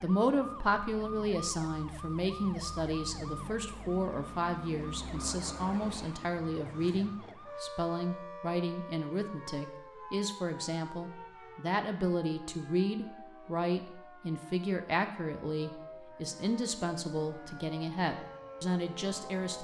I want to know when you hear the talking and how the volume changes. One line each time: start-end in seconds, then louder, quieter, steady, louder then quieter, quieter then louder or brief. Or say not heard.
0.0-19.6 steady.